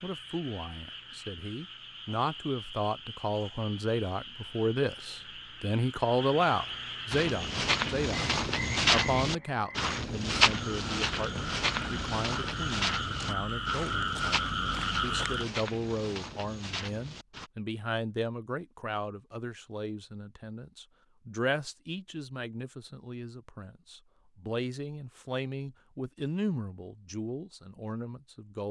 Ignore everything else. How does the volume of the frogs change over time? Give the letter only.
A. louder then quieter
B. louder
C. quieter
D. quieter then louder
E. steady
B.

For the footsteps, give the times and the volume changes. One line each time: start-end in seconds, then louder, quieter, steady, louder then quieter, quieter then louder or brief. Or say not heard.
7.1-17.5 quieter.